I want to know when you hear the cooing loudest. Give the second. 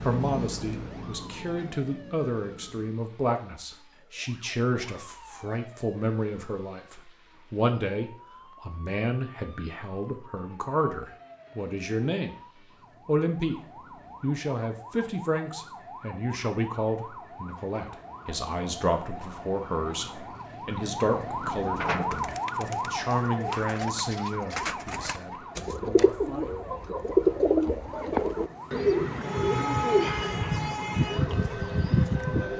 27 s.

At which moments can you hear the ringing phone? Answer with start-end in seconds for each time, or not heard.
not heard.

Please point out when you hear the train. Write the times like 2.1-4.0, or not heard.
0.0-3.0, 27.0-32.5.